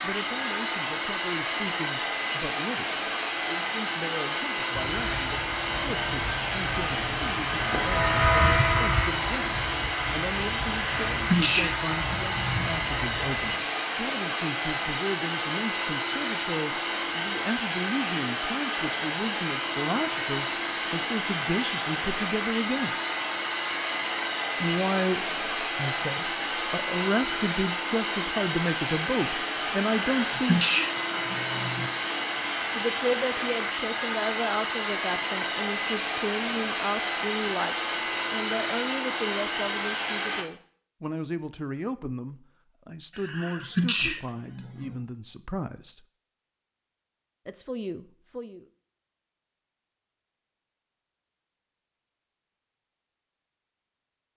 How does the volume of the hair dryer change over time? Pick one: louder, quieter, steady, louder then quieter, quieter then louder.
steady.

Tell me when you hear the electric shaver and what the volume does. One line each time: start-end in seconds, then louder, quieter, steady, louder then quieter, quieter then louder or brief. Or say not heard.
4.7-13.4 louder then quieter.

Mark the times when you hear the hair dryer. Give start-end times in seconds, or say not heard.
0.0-40.5.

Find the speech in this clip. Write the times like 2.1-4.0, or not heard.
0.0-22.9, 24.6-30.6, 32.8-46.0, 47.5-48.6.